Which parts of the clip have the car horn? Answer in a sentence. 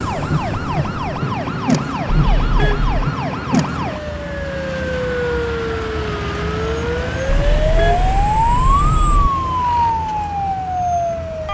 The car horn can be heard from 2.1 to 3.1 s and from 7.2 to 9.3 s.